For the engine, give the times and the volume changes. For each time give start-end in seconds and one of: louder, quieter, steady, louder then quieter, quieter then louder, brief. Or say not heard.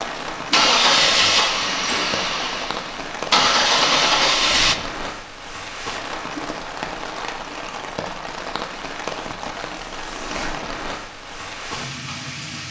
0.0-4.8 quieter then louder.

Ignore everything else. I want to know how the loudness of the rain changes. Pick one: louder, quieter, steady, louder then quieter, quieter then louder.
steady.